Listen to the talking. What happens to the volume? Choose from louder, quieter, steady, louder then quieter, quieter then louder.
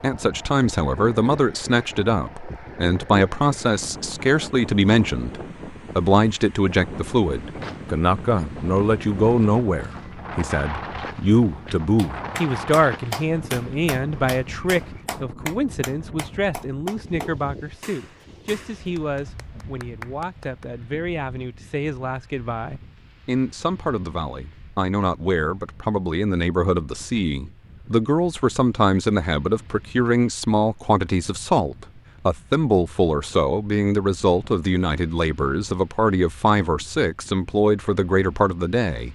quieter then louder.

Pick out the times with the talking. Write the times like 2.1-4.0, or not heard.
0.0-39.1.